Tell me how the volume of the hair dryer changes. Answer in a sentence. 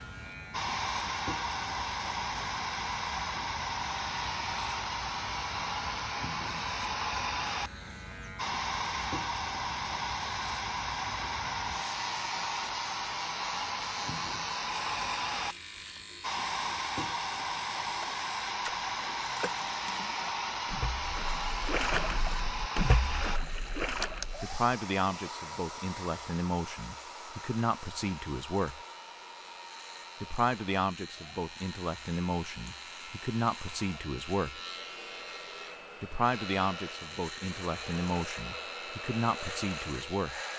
The volume of the hair dryer goes down.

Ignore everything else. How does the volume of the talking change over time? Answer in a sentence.
The volume of the talking stays about the same.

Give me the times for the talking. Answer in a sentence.
The talking can be heard from 24.4 to 28.8 s, from 30.2 to 34.6 s and from 36.0 to 40.4 s.